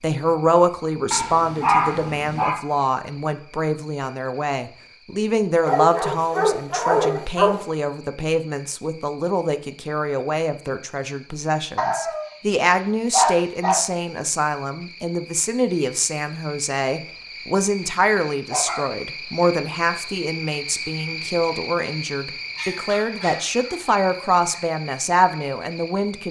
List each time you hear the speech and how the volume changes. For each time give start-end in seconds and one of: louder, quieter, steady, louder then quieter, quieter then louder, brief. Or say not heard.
0.0-26.2 steady.